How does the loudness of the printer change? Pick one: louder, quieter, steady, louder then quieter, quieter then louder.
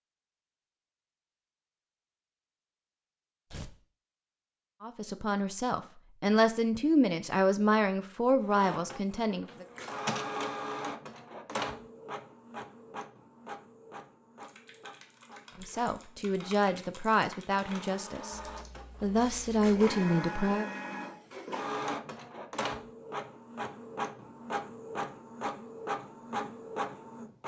quieter then louder.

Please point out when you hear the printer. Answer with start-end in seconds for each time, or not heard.
8.4-27.4.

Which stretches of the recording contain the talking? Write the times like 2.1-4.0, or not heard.
4.8-9.7, 15.6-18.4, 19.0-20.6.